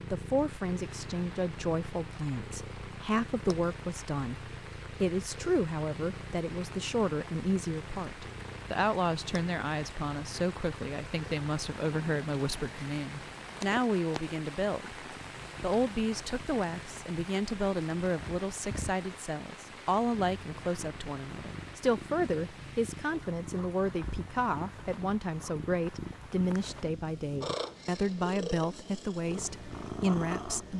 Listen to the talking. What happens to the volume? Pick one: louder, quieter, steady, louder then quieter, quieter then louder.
steady.